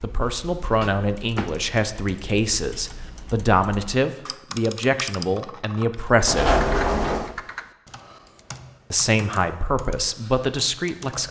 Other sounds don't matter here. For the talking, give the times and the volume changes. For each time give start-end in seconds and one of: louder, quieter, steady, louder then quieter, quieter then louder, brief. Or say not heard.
0.0-6.6 steady
8.9-11.2 brief.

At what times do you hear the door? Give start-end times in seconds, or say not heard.
0.7-1.7, 6.2-7.3.